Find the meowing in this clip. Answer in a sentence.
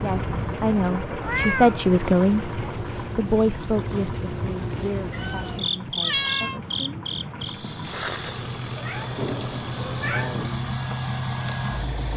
The meowing can be heard from 0.1 to 1.8 s, from 5.1 to 6.6 s and from 8.3 to 10.4 s.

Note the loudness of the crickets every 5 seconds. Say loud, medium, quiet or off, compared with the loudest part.
loud, loud, medium.